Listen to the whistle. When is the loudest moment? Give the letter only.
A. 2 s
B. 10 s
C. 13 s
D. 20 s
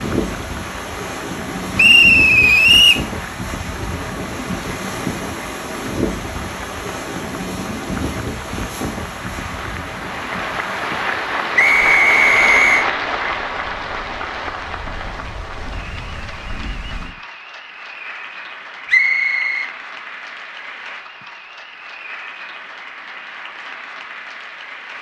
A.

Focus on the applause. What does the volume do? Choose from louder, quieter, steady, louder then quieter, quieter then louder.
louder then quieter.